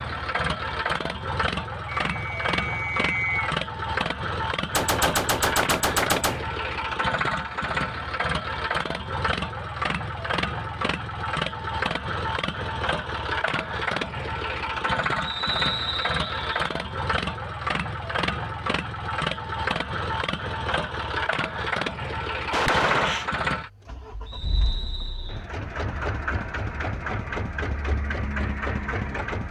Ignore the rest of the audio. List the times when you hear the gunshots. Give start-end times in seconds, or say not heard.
4.8-6.5, 22.5-23.2.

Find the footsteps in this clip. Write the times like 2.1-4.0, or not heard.
not heard.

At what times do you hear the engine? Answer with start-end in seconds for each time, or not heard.
0.0-29.4.